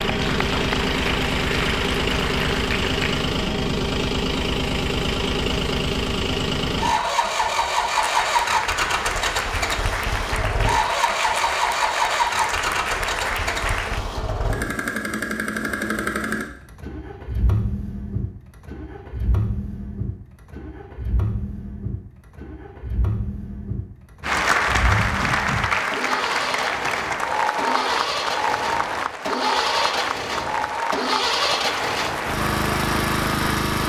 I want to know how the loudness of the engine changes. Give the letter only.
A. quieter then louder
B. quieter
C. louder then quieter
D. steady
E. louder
A.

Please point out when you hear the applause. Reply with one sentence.
You can hear the applause from 0.0 to 3.3 s, from 7.8 to 14.0 s and from 24.2 to 33.8 s.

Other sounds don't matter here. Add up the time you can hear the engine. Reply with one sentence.
You can hear the engine for 34 seconds altogether.